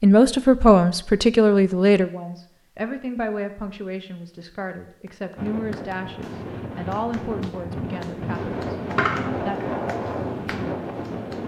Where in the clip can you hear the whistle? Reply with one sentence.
The whistle can't be heard in this clip.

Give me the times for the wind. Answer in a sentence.
You can hear the wind from 5.3 to 11.4 s.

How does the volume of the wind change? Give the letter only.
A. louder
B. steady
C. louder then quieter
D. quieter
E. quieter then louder
A.